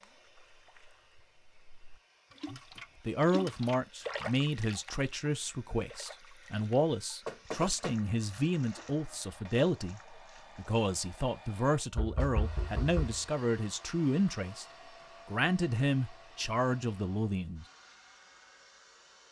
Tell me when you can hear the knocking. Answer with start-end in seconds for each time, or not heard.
7.2-8.0, 11.9-13.2.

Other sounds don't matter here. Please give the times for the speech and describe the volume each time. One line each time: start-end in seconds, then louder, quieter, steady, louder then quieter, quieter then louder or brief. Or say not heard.
2.5-14.7 steady
15.2-17.6 brief.